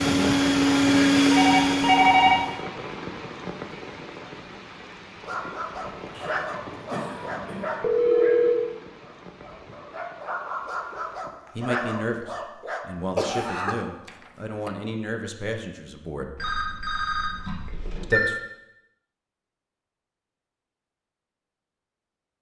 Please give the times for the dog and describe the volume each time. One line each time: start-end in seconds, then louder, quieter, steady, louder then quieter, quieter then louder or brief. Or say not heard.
5.2-12.8 quieter then louder.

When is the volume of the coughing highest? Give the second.
13 s.